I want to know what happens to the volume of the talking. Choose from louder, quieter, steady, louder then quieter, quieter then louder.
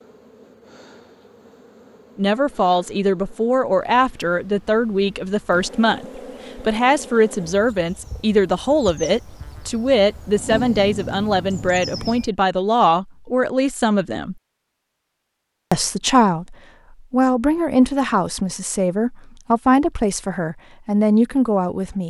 steady.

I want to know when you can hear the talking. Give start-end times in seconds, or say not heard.
2.1-14.3, 15.7-22.0.